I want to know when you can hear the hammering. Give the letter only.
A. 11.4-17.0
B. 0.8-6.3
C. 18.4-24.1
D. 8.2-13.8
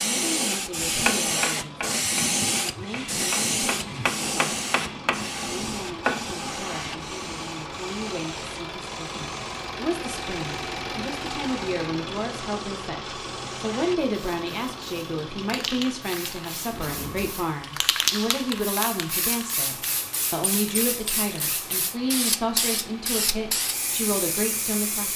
B.